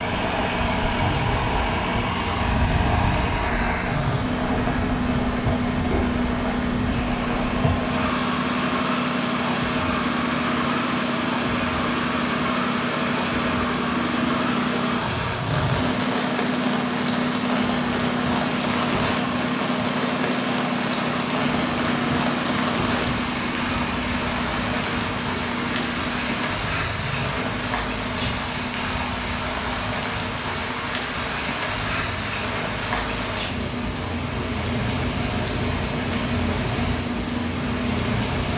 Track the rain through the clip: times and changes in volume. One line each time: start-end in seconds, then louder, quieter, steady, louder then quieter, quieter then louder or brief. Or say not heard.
0.0-38.5 steady.